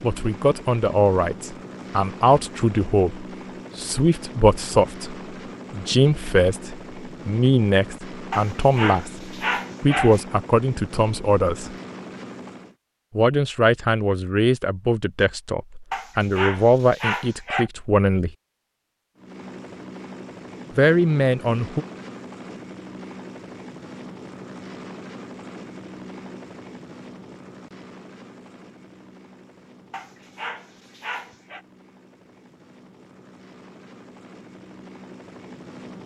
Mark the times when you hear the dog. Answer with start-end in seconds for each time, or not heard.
8.3-10.2, 15.9-17.7, 29.9-31.6.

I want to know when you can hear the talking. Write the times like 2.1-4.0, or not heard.
0.0-9.2, 9.8-11.8, 13.2-18.3, 20.8-21.9.